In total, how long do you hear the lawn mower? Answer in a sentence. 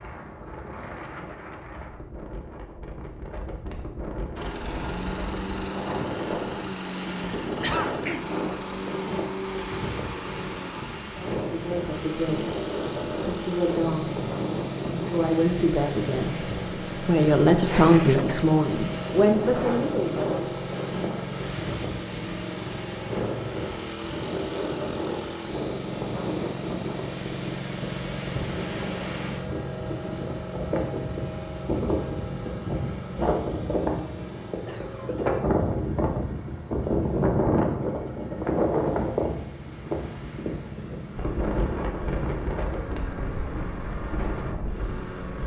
You can hear the lawn mower for 41 seconds altogether.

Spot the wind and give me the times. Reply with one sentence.
You can hear the wind from 0.0 to 45.4 s.